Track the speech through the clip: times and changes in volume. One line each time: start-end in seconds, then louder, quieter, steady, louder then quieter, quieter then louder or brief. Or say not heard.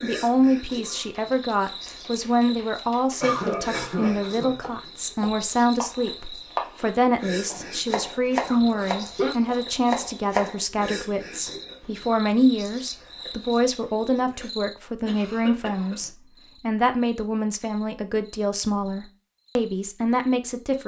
0.0-20.8 steady.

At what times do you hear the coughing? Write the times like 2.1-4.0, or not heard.
3.2-4.5, 8.4-9.3, 15.1-16.1.